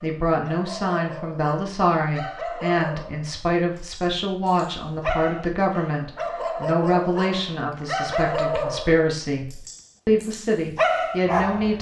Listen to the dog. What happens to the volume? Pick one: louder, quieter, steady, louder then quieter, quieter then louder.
louder.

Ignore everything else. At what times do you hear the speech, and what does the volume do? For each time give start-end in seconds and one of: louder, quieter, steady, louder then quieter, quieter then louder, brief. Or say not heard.
0.0-11.7 steady.